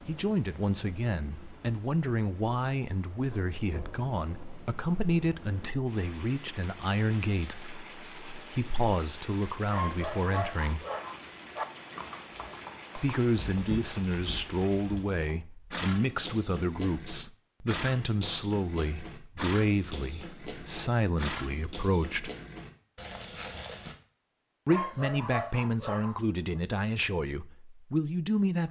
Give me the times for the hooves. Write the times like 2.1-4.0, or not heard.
11.9-23.9.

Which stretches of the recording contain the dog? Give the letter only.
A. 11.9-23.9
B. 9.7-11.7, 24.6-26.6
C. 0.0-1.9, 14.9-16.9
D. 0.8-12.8
B.